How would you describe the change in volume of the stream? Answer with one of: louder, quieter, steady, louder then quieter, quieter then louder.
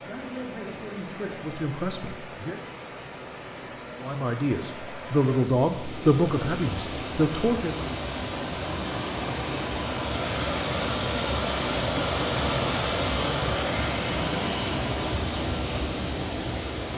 louder.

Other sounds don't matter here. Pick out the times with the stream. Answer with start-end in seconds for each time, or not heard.
0.0-16.9.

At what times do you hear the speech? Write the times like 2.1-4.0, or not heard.
0.0-2.6, 4.0-7.8.